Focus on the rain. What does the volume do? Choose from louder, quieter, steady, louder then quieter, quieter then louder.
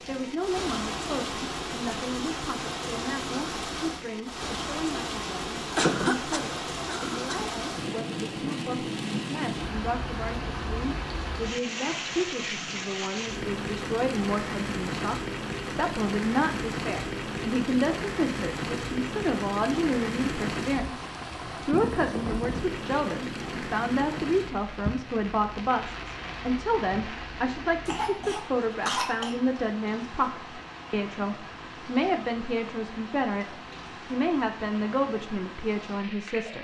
quieter.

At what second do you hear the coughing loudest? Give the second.
6 s.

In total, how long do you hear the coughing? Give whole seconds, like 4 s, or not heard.
3 s.